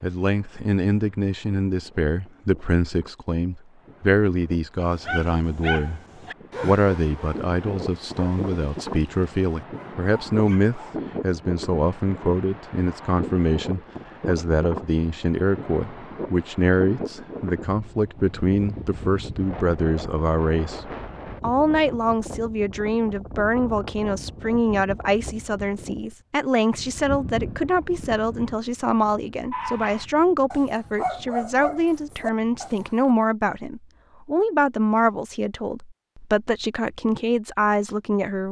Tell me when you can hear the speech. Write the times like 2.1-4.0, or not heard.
0.0-6.0, 6.6-38.4.